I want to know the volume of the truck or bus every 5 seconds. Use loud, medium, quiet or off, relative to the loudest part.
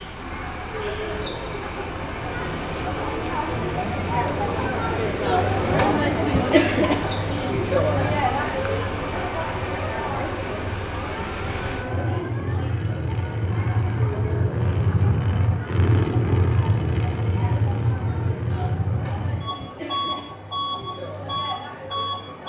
medium, medium, loud, loud, loud.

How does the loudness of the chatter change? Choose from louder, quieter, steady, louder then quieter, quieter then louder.
louder then quieter.